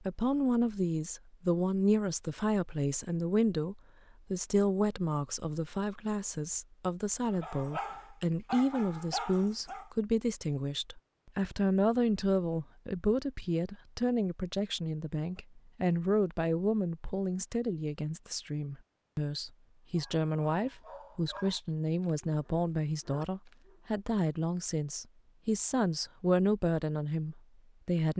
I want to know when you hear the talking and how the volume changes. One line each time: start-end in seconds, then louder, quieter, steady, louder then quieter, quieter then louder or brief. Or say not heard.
0.0-28.1 steady.